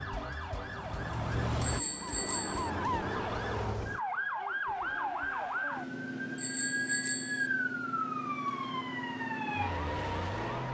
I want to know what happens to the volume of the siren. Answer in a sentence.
The loudness of the siren stays about the same.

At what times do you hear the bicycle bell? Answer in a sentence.
You can hear the bicycle bell from 1.6 to 2.7 s and from 6.3 to 7.5 s.